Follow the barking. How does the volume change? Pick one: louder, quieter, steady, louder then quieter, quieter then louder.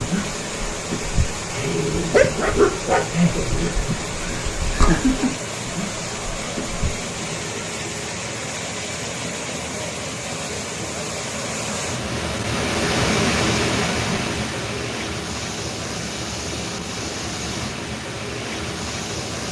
louder then quieter.